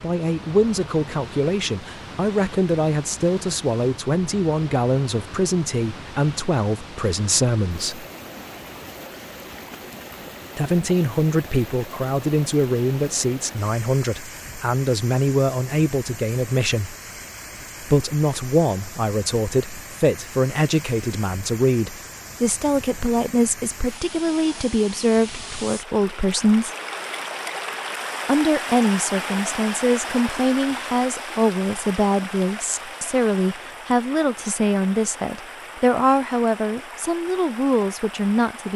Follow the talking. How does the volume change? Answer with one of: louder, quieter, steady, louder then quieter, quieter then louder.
steady.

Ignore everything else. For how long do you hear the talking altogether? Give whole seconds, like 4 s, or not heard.
34 s.